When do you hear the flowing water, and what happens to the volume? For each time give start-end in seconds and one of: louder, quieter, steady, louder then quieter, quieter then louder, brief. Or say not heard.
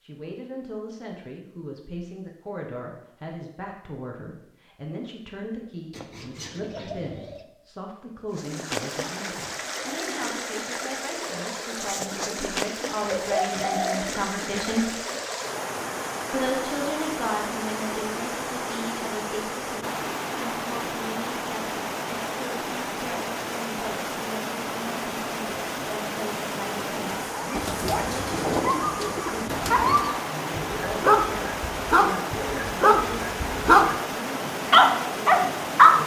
8.3-36.0 steady.